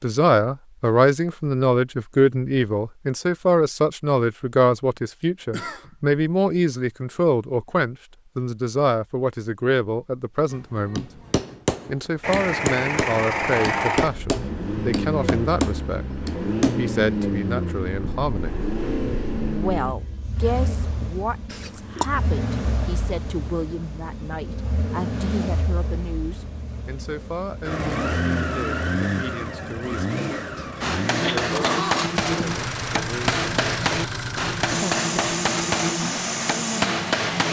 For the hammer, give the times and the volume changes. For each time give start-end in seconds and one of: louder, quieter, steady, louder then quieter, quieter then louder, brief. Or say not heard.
10.5-16.9 steady
30.8-37.4 steady.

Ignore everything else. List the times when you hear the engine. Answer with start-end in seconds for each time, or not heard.
12.2-37.4.